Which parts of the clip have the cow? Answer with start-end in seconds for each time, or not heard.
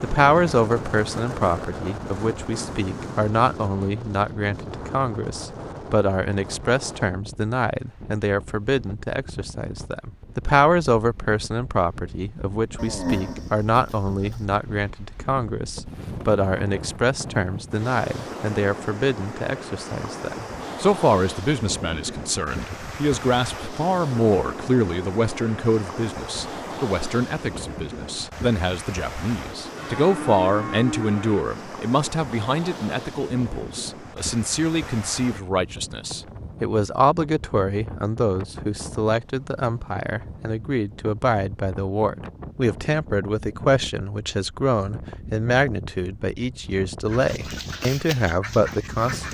12.8-14.3, 29.8-31.4.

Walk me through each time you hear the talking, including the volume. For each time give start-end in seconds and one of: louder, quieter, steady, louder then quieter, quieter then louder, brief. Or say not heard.
0.0-49.2 steady.